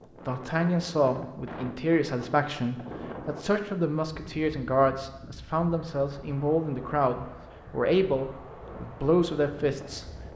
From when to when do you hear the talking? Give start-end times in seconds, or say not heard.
0.2-10.1.